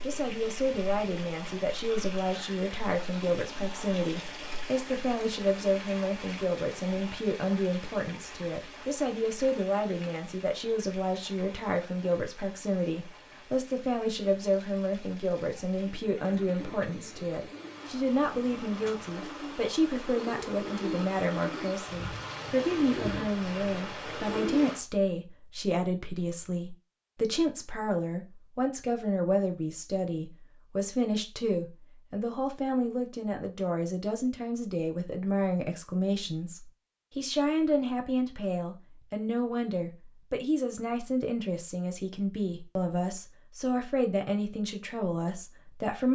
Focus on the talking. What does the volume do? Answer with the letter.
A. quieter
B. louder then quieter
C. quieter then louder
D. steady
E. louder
D.